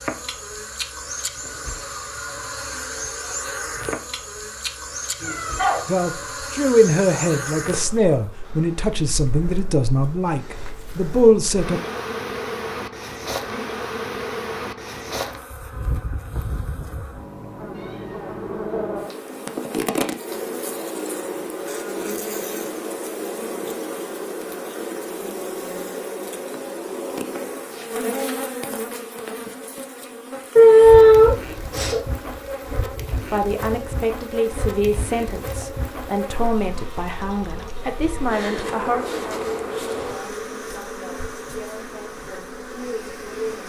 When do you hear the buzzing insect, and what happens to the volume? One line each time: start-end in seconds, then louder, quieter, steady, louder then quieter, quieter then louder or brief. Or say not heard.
0.0-43.6 steady.